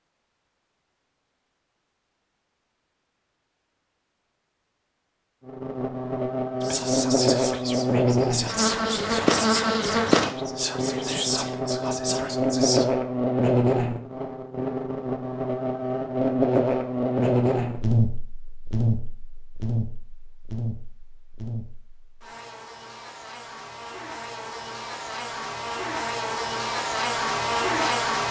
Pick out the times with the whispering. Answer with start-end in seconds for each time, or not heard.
6.6-12.8.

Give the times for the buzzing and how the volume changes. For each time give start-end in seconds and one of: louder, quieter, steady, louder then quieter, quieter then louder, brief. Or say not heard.
5.5-28.2 quieter then louder.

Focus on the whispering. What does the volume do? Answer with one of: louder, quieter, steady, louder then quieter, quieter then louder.
steady.